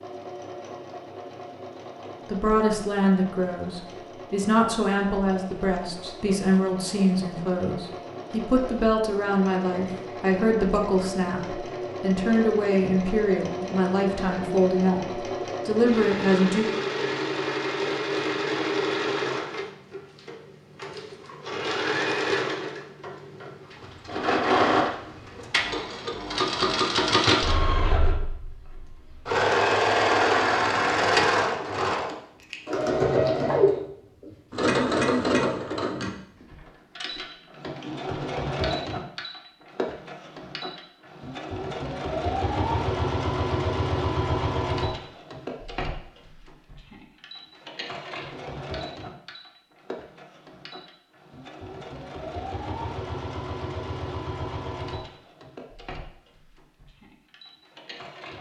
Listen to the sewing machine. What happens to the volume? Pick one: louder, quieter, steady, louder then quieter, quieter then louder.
louder then quieter.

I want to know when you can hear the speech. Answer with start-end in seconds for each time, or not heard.
2.2-16.6.